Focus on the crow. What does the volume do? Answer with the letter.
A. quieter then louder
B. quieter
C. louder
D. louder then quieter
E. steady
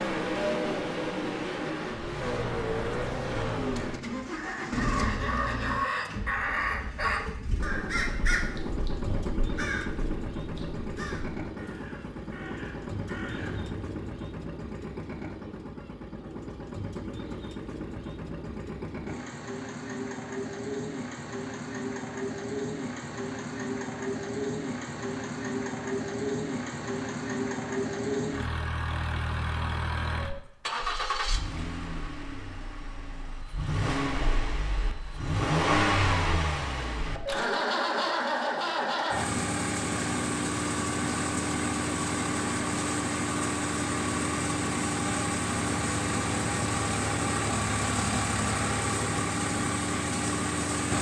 B.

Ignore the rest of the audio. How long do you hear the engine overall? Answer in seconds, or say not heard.
51 s.